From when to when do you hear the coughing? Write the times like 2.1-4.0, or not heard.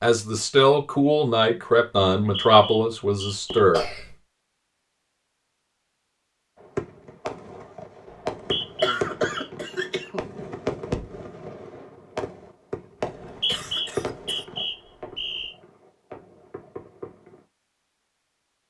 3.5-4.2, 8.8-10.2, 13.3-14.4.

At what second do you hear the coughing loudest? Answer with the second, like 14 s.
9 s.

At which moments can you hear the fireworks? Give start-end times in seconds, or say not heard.
6.6-17.4.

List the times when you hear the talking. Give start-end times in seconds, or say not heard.
0.0-3.9.